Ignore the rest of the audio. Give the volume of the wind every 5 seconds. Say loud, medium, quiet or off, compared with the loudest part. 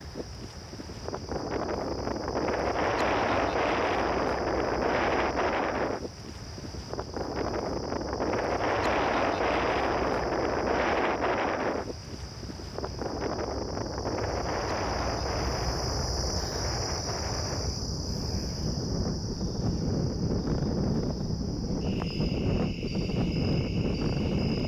loud, loud, loud, medium, loud.